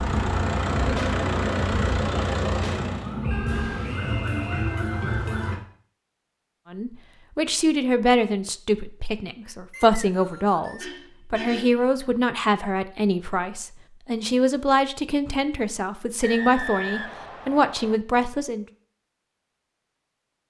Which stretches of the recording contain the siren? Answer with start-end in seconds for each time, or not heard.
0.0-5.5.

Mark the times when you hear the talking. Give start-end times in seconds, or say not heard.
6.7-18.6.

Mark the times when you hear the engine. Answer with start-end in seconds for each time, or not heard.
0.0-3.1.